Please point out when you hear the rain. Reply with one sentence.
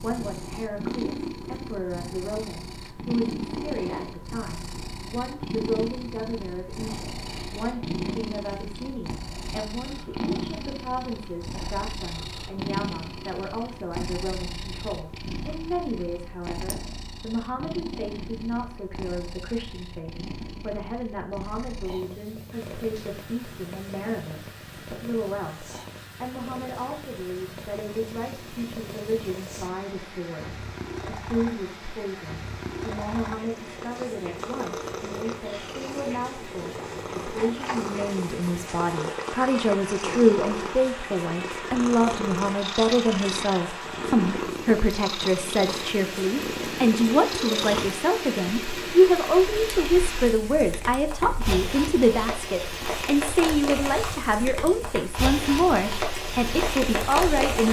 The rain can be heard from 22.5 to 57.6 s.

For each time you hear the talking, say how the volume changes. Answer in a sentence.
The talking can be heard from 0.0 to 57.6 s, getting louder.